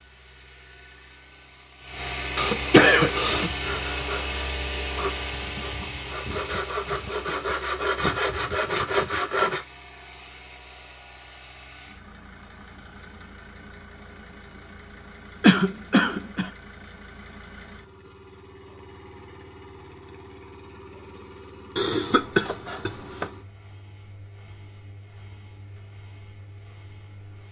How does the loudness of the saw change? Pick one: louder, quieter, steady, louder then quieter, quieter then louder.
louder.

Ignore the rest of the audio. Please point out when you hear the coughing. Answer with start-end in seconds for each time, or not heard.
2.4-3.5, 15.4-16.5, 21.8-23.2.